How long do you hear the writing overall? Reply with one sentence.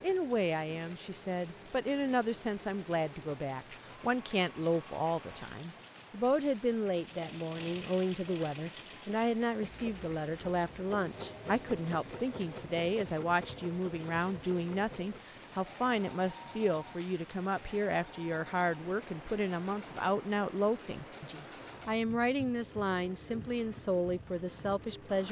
The writing can't be heard in this clip.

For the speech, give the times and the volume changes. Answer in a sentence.
You can hear the speech from 0.0 to 25.2 s, at a steady volume.